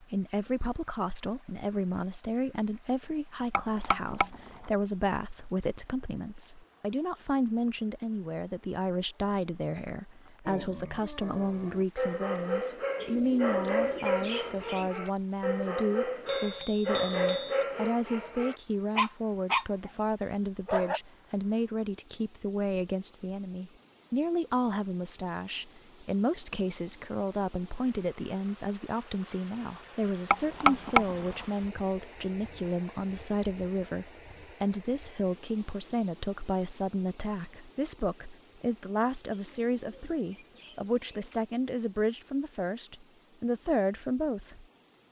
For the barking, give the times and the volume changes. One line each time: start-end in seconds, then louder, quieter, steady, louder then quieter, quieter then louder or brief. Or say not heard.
10.4-21.0 louder.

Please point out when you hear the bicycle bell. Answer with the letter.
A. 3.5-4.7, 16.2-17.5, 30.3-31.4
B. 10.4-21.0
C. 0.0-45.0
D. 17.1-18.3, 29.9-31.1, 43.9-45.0
A.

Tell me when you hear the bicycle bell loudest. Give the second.
31 s.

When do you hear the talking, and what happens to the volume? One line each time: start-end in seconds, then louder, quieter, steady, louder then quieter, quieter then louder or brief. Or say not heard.
0.0-45.0 steady.